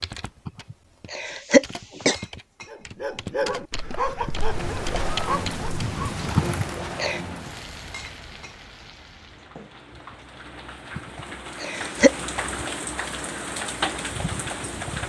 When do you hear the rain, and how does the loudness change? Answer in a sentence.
You can hear the rain from 4.3 to 15.0 s, getting quieter then louder.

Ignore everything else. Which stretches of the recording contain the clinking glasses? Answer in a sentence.
The clinking glasses can be heard from 2.1 to 3.1 s and from 7.9 to 9.8 s.